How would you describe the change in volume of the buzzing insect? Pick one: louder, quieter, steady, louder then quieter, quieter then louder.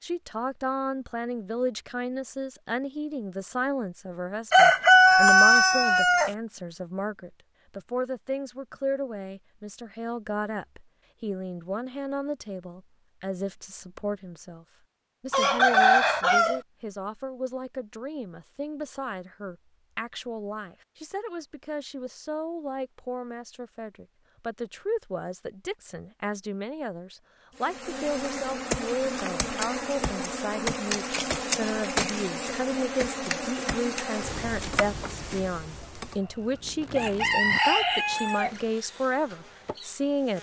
quieter.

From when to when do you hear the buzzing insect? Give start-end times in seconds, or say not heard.
27.6-40.3.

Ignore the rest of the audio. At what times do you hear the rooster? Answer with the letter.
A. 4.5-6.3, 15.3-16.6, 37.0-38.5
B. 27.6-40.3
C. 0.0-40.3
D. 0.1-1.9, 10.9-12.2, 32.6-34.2
A.